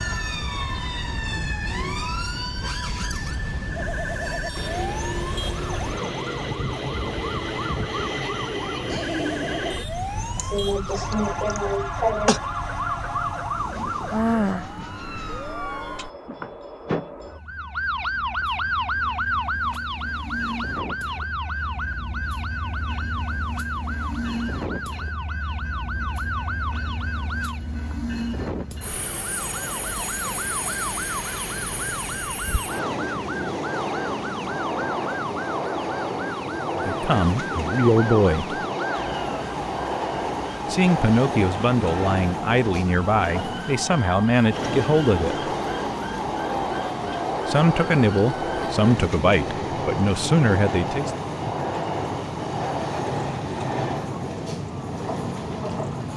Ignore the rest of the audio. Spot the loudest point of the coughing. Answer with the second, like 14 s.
12 s.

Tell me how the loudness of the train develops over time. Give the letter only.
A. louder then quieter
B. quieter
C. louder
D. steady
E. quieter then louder
E.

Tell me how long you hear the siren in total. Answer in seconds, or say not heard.
56 s.